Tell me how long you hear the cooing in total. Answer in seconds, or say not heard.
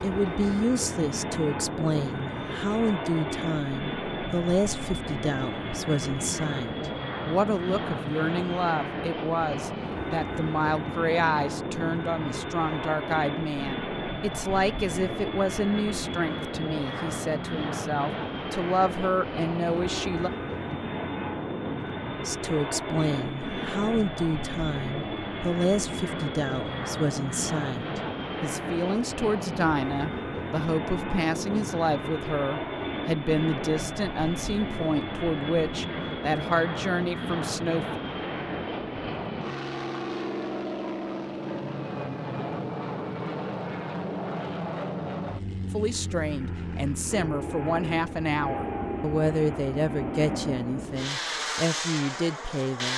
not heard.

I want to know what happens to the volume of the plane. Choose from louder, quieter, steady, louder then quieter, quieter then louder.
steady.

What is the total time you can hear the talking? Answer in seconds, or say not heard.
43 s.